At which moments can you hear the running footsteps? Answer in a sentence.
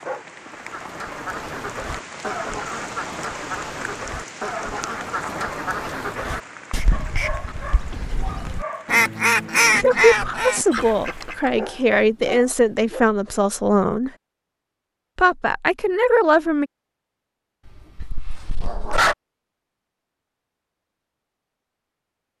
The running footsteps can't be heard in this clip.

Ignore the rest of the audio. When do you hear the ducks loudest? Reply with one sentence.
The volume of the ducks peaks at 10 seconds.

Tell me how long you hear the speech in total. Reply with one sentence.
You can hear the speech for 6 seconds altogether.